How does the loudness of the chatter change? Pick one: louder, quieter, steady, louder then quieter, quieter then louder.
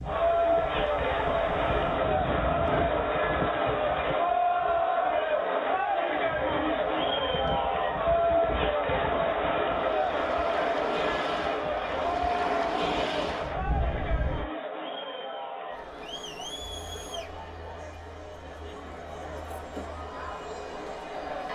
quieter.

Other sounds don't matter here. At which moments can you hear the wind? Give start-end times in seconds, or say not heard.
0.0-14.4.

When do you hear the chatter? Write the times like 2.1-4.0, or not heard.
0.0-21.5.